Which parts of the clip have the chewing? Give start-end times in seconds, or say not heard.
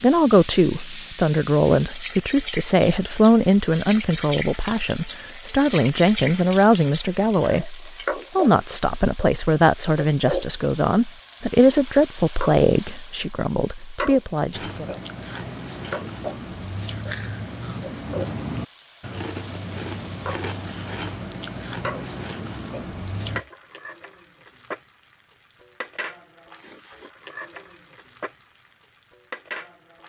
14.5-23.4.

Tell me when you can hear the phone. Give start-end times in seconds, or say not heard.
not heard.